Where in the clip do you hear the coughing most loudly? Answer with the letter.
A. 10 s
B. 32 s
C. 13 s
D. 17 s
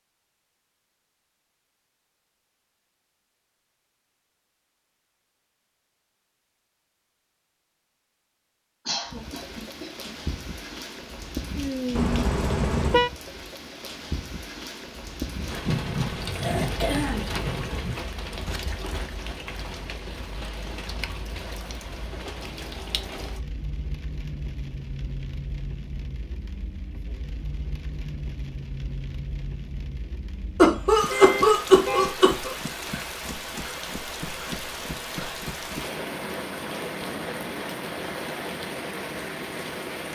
B.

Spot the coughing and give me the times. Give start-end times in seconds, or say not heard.
8.8-10.1, 15.7-17.9, 30.6-32.5.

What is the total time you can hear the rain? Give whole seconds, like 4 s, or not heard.
31 s.